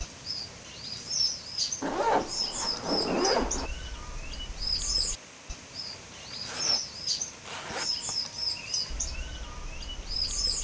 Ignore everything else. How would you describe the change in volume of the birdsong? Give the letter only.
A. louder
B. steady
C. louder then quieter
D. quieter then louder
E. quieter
B.